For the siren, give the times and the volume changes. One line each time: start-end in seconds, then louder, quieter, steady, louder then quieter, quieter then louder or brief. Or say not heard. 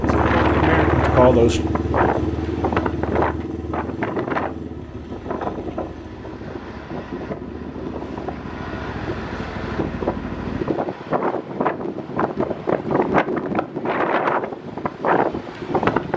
not heard.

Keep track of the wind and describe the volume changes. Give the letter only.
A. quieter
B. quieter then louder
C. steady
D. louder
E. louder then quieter
B.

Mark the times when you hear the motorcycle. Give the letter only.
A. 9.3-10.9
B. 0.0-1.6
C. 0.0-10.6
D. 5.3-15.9
C.